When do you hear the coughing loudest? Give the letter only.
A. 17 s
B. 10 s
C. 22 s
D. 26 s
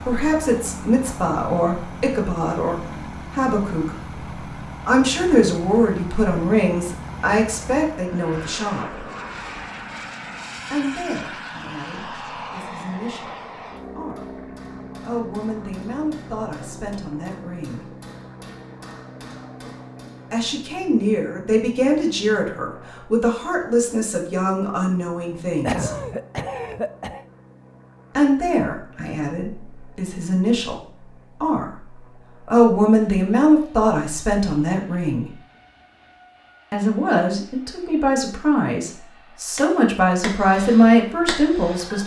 D.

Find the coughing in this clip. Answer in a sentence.
You can hear the coughing from 25.6 to 27.2 s.